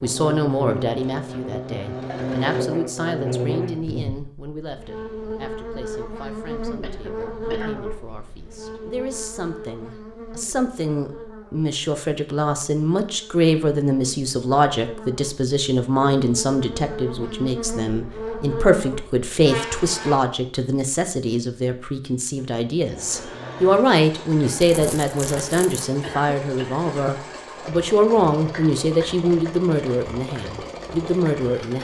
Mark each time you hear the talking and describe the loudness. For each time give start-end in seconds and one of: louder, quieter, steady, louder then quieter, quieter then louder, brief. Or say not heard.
0.0-31.7 louder.